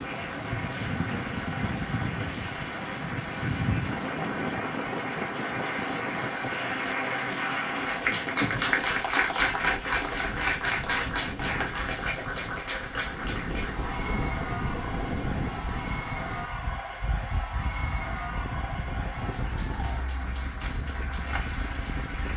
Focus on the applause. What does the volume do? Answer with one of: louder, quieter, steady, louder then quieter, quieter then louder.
louder then quieter.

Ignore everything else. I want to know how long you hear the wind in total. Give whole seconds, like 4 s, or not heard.
22 s.